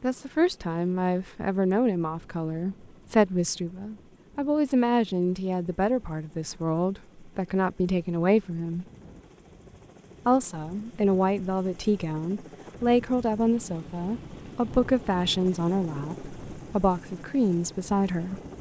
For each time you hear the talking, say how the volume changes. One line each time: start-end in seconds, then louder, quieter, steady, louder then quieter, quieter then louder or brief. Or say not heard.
0.0-8.8 steady
10.2-18.4 steady.